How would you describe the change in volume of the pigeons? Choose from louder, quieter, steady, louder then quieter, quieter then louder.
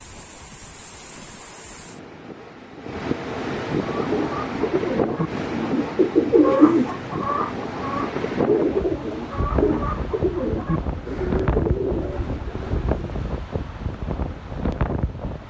louder then quieter.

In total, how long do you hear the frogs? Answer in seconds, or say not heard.
not heard.